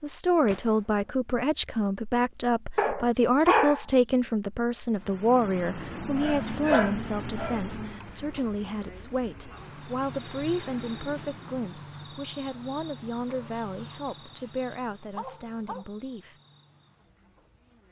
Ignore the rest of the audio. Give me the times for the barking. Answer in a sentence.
The barking can be heard from 2.8 to 4.3 s, from 6.2 to 8.1 s and from 13.2 to 15.9 s.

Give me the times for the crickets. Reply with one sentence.
You can hear the crickets from 8.0 to 17.8 s.